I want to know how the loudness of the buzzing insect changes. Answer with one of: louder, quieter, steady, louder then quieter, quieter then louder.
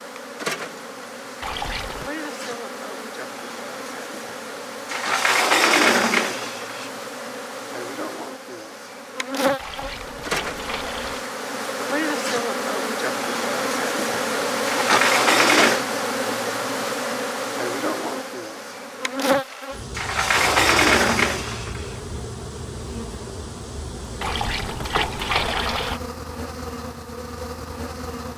louder then quieter.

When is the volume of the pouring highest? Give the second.
25 s.